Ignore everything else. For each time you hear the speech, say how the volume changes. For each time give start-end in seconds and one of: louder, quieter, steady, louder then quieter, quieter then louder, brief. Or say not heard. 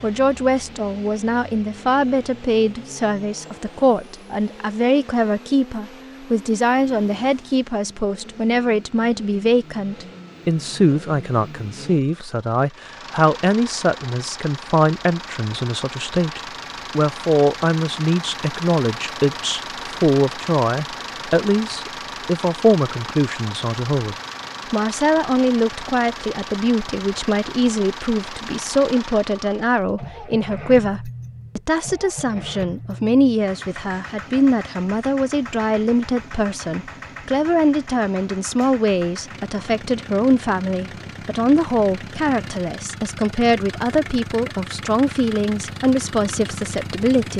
0.0-47.3 steady.